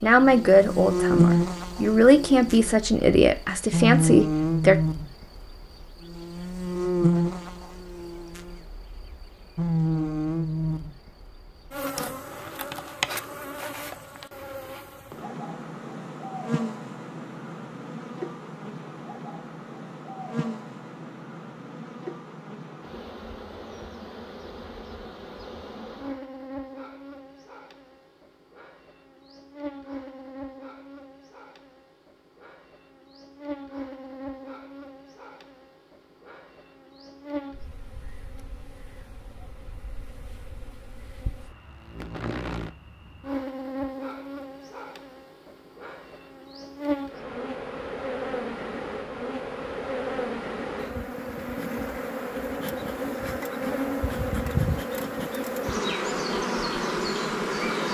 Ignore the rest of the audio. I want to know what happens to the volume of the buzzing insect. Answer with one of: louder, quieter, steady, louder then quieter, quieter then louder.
quieter then louder.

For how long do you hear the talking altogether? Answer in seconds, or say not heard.
5 s.